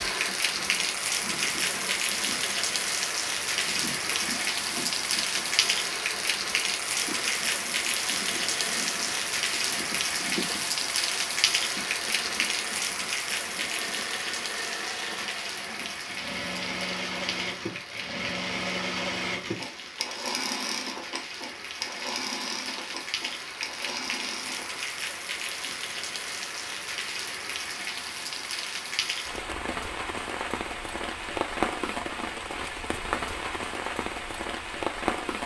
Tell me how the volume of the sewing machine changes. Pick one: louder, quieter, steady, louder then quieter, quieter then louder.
louder.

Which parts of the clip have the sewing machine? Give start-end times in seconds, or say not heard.
0.0-24.8.